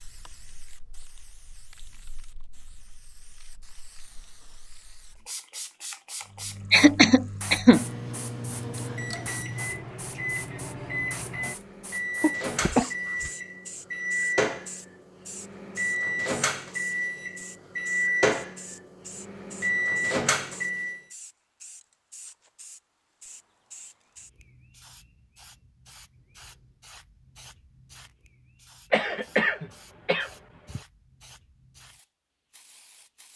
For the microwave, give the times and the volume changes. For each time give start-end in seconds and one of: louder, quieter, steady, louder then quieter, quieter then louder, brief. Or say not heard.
6.2-21.0 louder.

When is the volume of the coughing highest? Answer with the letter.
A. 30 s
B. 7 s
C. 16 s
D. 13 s
B.